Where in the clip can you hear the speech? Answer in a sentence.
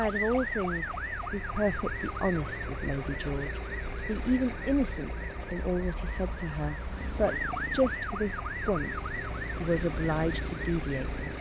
You can hear the speech from 0.0 to 11.3 s.